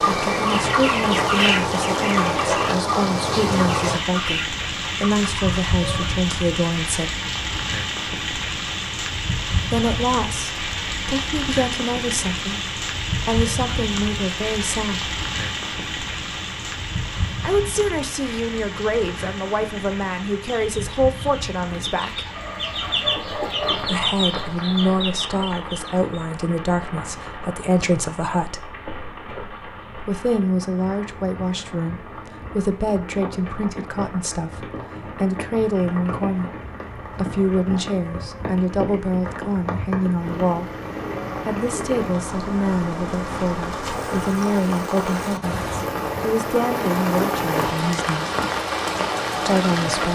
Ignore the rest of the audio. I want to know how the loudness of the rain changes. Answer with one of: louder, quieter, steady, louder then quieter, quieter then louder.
quieter then louder.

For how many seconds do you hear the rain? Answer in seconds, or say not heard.
50 s.